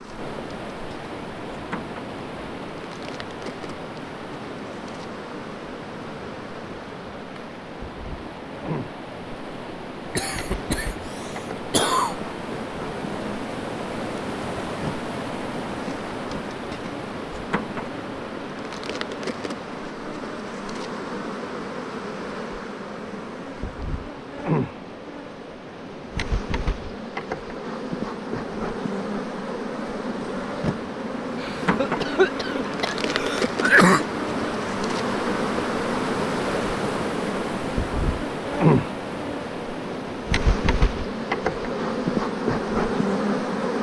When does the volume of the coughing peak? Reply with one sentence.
The volume of the coughing peaks at 34 seconds.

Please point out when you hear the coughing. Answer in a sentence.
You can hear the coughing from 10.2 to 10.9 s, from 11.6 to 12.2 s and from 31.4 to 34.0 s.